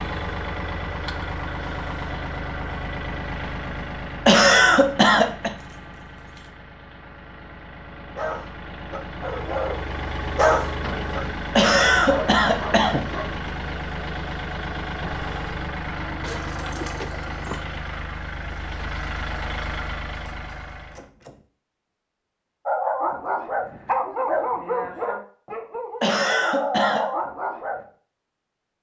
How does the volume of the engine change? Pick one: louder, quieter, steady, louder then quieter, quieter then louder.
quieter then louder.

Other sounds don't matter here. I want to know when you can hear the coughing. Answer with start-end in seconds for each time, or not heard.
4.2-5.5, 11.6-13.1, 26.0-27.1.